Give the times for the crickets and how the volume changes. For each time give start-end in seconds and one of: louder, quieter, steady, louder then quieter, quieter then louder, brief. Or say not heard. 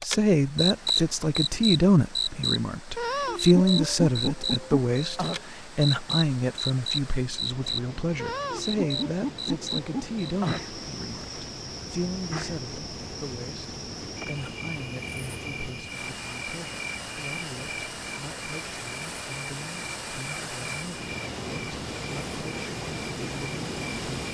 0.0-24.3 quieter.